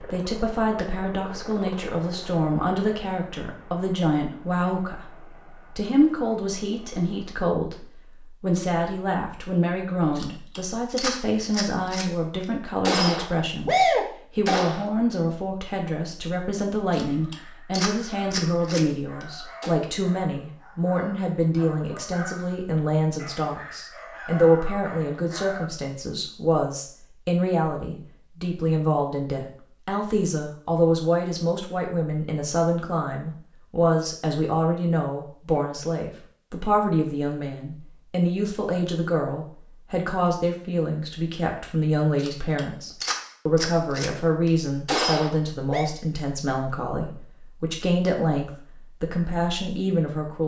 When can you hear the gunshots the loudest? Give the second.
14 s.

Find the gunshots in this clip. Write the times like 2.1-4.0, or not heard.
10.2-14.8, 16.9-19.7, 42.1-45.9.